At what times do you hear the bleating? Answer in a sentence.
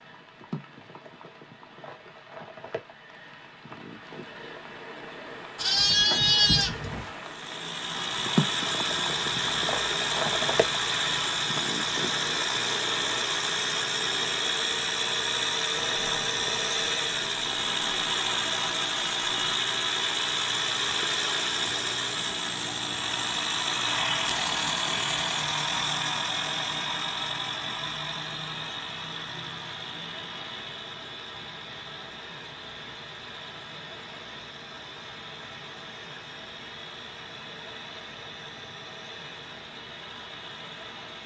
The bleating can be heard from 5.5 to 7.1 s.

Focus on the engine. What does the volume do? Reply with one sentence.
The volume of the engine goes down.